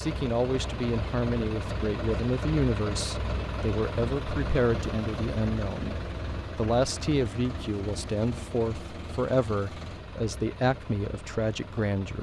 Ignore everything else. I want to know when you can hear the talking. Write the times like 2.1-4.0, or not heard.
0.0-6.0, 6.5-12.1.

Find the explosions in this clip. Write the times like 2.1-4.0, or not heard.
not heard.